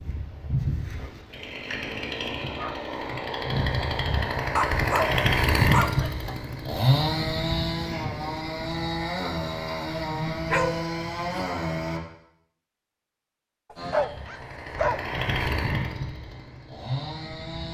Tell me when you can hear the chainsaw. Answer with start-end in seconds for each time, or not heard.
0.0-12.0, 13.8-17.7.